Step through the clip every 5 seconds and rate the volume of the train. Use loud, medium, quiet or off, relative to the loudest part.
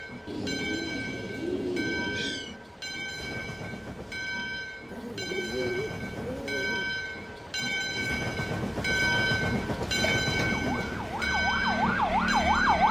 medium, loud, loud.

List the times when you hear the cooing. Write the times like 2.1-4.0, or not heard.
0.2-2.5, 4.8-6.8, 9.8-11.3.